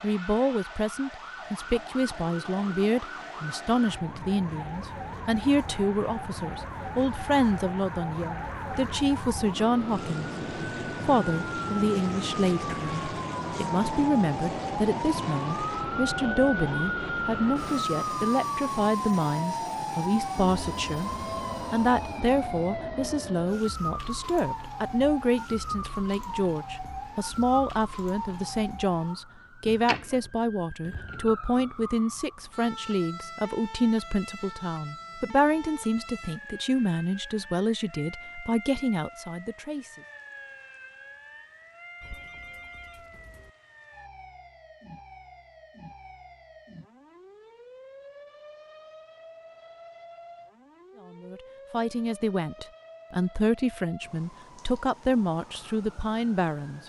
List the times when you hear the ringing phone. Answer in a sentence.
You can hear the ringing phone from 42.0 to 43.5 s.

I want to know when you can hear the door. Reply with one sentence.
The door can't be heard in this clip.